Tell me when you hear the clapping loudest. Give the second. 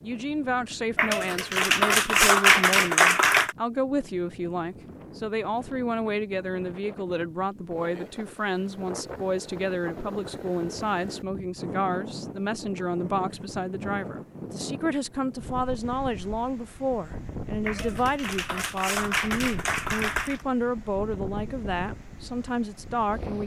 2 s.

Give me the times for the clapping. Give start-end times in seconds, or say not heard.
0.9-3.5, 17.6-20.4.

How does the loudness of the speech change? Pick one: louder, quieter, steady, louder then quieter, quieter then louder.
steady.